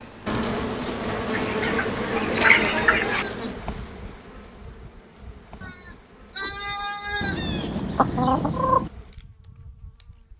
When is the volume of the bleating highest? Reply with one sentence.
The volume of the bleating peaks at 7 seconds.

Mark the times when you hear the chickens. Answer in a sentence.
You can hear the chickens from 1.3 to 3.2 s and from 7.2 to 8.9 s.